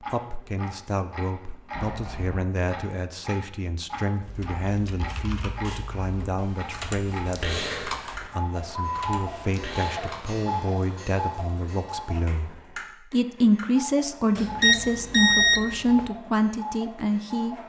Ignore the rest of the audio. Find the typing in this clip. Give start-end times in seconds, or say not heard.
4.2-10.4.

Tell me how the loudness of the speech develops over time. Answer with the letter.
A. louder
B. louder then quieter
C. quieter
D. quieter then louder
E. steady
A.